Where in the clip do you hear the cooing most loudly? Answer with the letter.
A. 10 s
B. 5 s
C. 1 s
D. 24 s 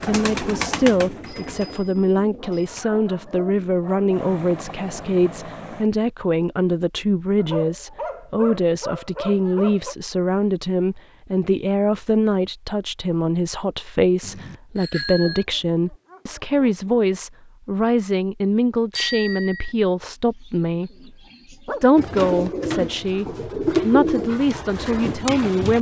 D.